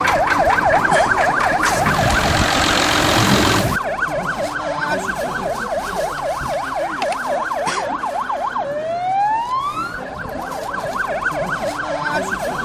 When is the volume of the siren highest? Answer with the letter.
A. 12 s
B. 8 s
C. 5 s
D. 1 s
D.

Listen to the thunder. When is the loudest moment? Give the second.
3 s.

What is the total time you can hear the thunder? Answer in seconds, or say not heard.
2 s.